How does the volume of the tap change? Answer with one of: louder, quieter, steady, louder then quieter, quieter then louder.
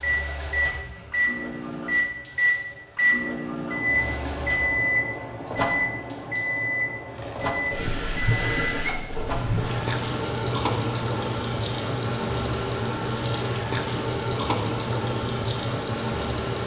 louder.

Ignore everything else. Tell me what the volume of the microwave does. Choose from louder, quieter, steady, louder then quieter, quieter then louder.
quieter.